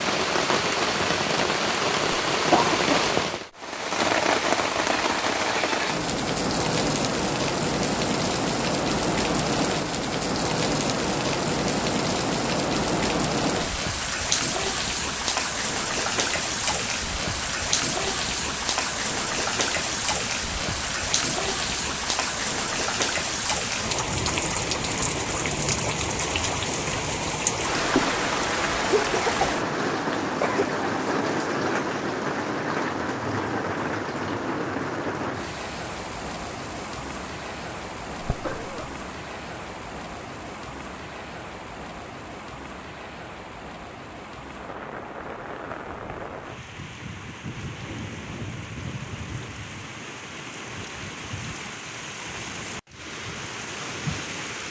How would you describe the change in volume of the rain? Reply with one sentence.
The loudness of the rain goes down.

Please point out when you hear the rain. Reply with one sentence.
The rain can be heard from 0.0 to 54.6 s.